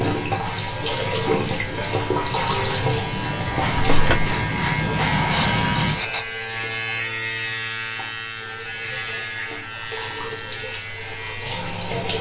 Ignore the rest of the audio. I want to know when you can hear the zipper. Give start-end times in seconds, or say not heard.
not heard.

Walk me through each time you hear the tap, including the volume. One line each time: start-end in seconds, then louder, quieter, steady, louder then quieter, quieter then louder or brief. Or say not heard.
0.0-12.1 quieter then louder.